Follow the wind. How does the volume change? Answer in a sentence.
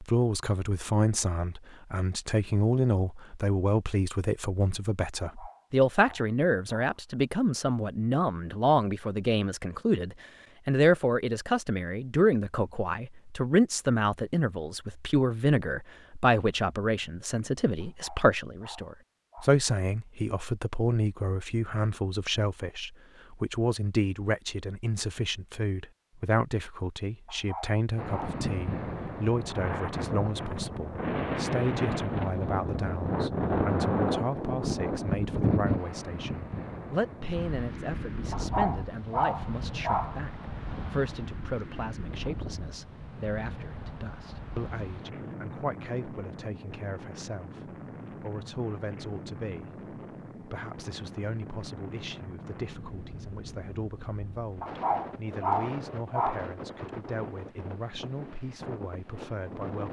The volume of the wind goes down.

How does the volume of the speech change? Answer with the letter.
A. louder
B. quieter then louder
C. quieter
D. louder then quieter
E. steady
C.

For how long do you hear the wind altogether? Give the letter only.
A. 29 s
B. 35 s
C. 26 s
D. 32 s
D.